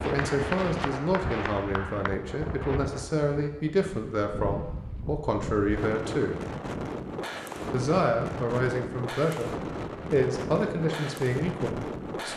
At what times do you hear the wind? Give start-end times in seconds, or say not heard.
0.0-12.3.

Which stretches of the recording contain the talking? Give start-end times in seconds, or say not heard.
0.1-6.5, 7.7-12.3.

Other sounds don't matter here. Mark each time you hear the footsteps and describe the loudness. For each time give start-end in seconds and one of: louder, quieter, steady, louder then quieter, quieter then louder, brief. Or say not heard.
not heard.